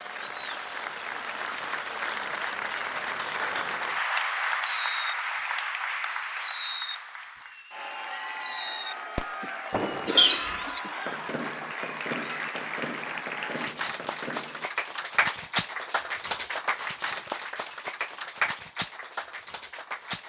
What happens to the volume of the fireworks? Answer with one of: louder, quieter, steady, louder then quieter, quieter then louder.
quieter.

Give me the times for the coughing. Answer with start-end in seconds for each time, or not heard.
9.4-11.2.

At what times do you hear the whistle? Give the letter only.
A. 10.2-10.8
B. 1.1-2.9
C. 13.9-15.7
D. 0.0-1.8
A.